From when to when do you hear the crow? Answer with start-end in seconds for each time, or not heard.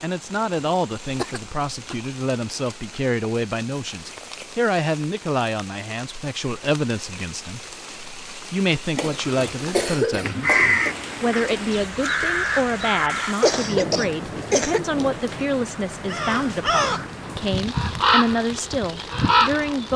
8.9-13.3, 16.1-19.9.